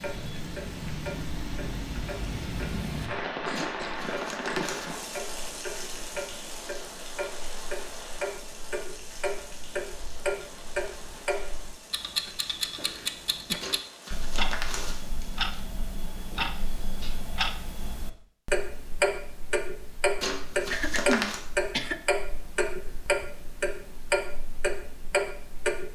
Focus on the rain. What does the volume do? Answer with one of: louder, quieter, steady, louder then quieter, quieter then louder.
quieter.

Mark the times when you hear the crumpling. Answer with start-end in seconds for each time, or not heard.
3.5-4.9, 13.6-15.4, 20.2-21.4.